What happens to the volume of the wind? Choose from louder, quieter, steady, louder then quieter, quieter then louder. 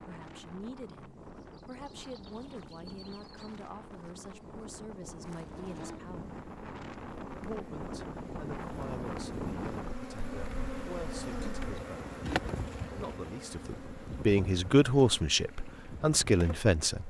louder then quieter.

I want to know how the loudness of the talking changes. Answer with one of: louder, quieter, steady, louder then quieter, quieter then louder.
louder.